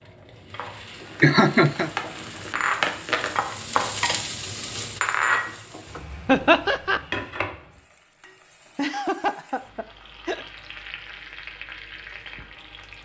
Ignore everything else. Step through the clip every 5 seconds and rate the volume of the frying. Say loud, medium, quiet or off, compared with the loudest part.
loud, loud, medium.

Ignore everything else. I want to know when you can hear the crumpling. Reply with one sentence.
The crumpling can be heard from 1.1 to 3.4 s.